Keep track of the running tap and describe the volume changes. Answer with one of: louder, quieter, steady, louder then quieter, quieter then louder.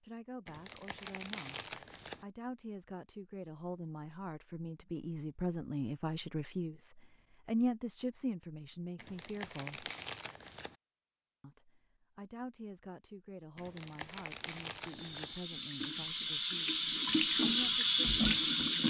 louder.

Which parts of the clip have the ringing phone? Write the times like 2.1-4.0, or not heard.
not heard.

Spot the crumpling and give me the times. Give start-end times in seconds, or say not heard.
0.5-2.1, 9.0-10.7, 13.6-15.2.